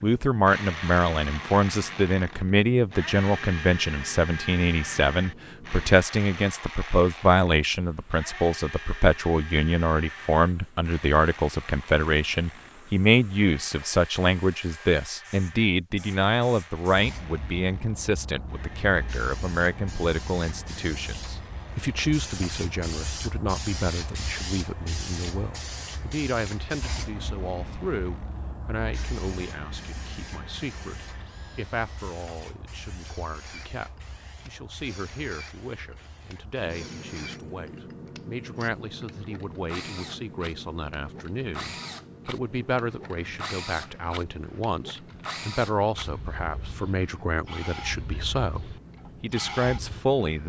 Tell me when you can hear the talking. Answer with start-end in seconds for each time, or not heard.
0.0-50.4.